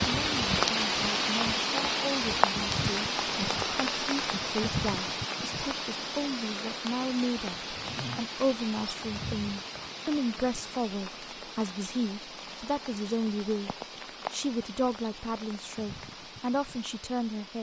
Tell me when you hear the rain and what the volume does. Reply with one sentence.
You can hear the rain from 0.0 to 17.5 s, getting quieter.